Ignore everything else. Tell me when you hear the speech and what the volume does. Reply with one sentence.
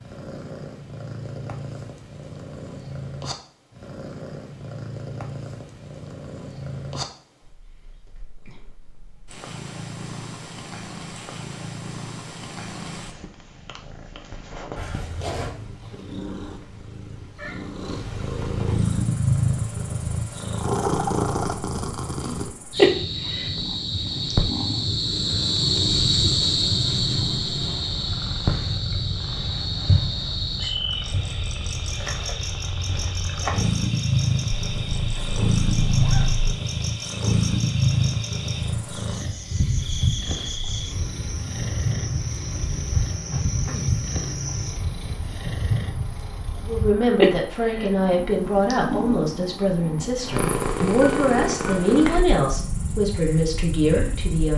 The speech can be heard from 46.6 to 54.5 s, at a steady volume.